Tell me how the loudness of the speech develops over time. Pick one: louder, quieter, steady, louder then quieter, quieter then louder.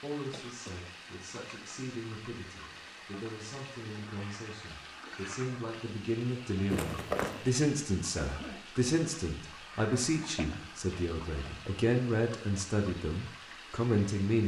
louder.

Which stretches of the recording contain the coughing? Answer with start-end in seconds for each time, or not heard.
0.3-0.9, 8.2-8.7.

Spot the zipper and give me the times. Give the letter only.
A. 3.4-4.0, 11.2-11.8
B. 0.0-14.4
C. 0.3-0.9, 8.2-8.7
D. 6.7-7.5
D.